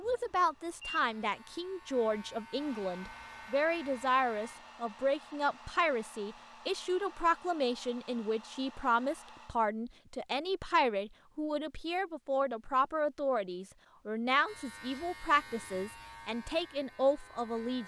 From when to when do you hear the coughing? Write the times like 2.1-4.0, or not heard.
not heard.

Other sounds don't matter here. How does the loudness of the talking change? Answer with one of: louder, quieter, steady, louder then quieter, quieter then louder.
steady.